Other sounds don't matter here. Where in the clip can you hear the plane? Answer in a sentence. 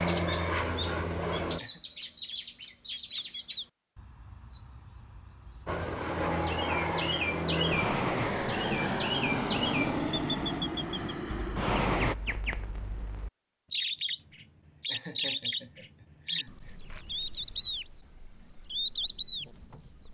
The plane can be heard from 0.0 to 1.6 s and from 5.7 to 12.2 s.